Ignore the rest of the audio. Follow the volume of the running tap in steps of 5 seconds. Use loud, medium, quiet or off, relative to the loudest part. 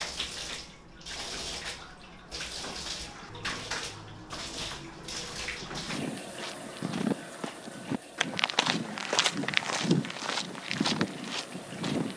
loud, loud, medium.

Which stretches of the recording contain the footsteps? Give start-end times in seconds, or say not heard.
5.6-12.1.